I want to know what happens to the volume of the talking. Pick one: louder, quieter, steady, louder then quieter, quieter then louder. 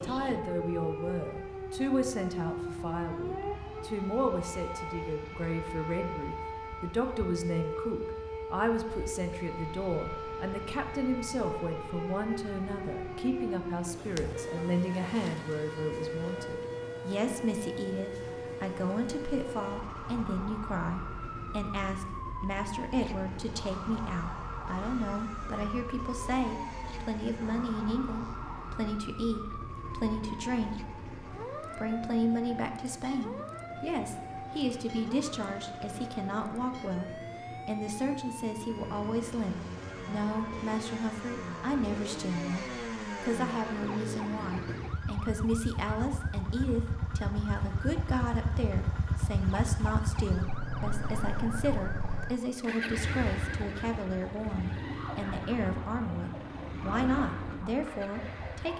steady.